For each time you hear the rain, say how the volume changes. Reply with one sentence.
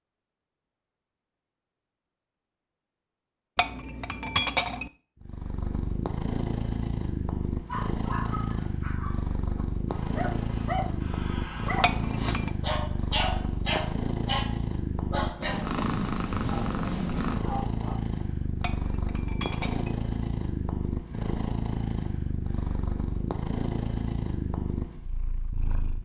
The rain can't be heard in this clip.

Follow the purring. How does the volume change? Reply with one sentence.
The loudness of the purring stays about the same.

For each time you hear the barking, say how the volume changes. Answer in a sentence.
You can hear the barking from 7.7 to 17.9 s, getting louder then quieter.